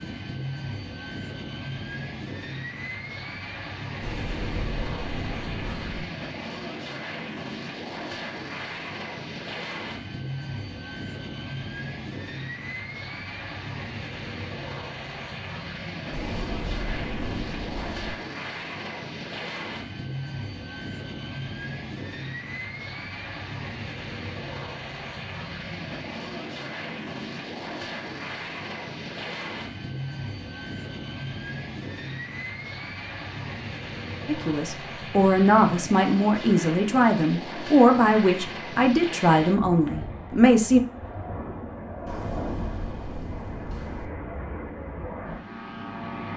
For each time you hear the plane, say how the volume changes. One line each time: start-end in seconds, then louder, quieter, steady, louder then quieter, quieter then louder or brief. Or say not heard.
0.0-46.3 steady.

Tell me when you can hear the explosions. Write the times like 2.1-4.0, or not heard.
4.0-6.0, 16.1-18.1, 42.0-44.1.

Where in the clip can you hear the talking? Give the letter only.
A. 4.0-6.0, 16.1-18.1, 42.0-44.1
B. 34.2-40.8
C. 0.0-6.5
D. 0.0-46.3
B.